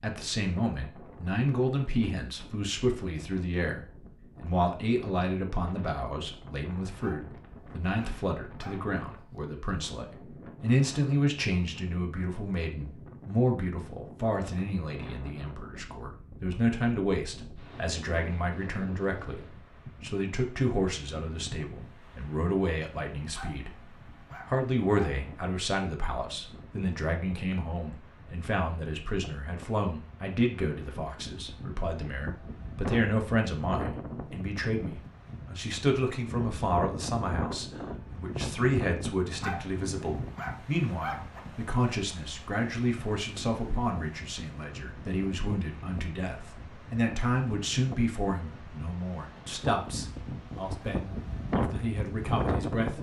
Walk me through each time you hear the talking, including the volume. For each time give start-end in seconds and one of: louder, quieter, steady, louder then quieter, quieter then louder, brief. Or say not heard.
0.0-52.9 steady.